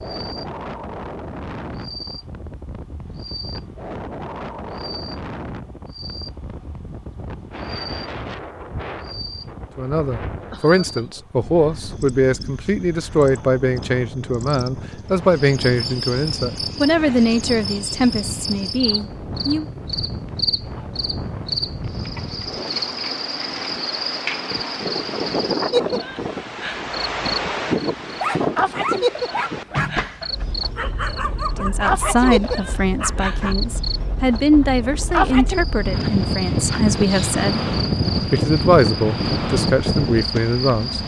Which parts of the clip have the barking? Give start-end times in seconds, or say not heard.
28.2-33.5.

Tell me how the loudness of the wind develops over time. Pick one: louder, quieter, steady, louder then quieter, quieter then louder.
louder.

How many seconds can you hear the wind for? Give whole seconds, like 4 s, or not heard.
41 s.